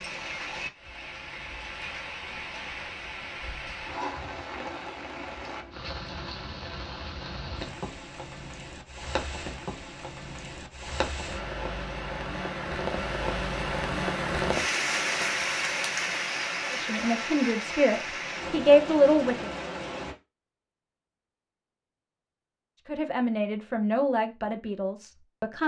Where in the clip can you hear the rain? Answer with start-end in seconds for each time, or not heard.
0.0-20.1.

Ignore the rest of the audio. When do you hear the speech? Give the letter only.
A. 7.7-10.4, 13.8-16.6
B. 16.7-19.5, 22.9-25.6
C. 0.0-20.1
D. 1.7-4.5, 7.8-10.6
B.